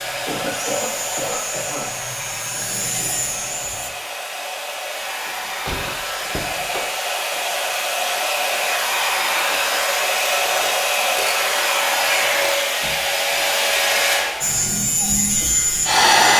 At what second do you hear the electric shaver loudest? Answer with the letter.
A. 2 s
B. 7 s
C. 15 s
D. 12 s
C.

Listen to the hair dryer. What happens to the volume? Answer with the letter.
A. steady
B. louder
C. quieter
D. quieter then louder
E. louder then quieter
B.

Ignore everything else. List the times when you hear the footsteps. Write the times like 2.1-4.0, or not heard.
not heard.